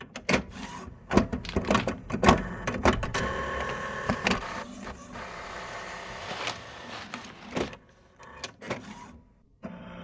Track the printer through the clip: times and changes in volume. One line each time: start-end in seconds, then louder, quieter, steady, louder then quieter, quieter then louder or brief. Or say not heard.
0.0-9.9 quieter.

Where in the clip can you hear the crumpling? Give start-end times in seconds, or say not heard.
1.4-2.0, 6.2-7.7.